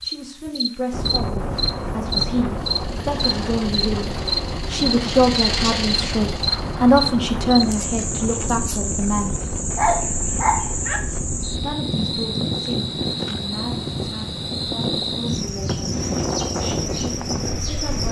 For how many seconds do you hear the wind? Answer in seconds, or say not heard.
18 s.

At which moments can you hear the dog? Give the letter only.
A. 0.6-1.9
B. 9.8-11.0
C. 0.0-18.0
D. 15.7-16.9
B.